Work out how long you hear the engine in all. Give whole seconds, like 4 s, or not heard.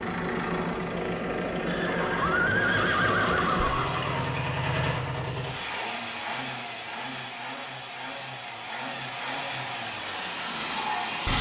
11 s.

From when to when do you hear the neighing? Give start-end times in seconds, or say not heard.
1.6-4.3.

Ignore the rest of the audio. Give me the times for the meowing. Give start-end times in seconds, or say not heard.
not heard.